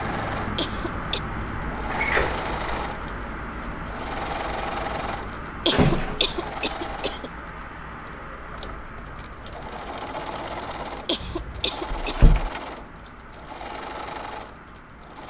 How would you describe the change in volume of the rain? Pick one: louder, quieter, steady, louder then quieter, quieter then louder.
quieter.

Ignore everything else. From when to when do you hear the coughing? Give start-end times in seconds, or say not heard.
0.6-1.2, 5.7-7.3, 11.1-12.3.